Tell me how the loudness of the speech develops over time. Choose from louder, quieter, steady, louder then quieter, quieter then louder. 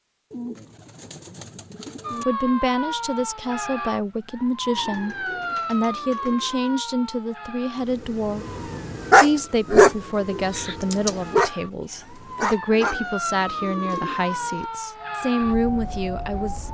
steady.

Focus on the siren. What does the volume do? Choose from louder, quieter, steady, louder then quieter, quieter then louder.
quieter then louder.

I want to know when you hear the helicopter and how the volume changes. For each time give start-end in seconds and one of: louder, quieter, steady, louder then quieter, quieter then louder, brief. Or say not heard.
not heard.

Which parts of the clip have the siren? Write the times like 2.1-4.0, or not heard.
2.0-16.6.